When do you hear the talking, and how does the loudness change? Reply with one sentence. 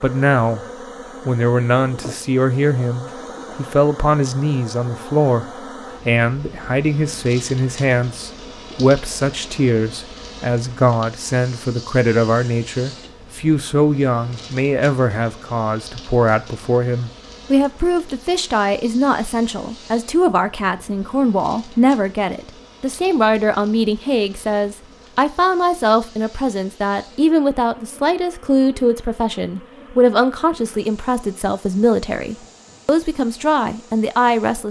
The talking can be heard briefly from 0.0 to 0.6 s; and from 1.2 to 34.6 s, at a steady volume.